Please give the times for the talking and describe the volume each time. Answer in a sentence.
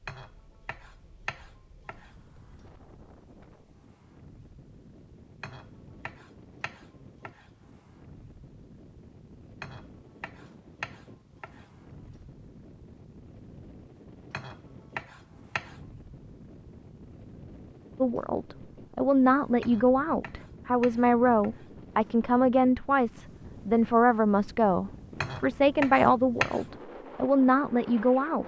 The talking can be heard from 17.9 to 28.4 s, at a steady volume.